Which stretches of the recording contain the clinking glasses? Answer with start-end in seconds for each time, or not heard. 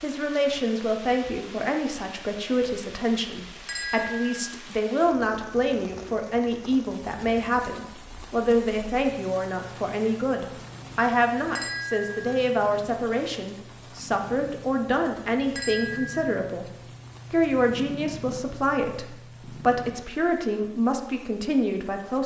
3.6-4.5, 11.6-12.4, 15.6-16.3.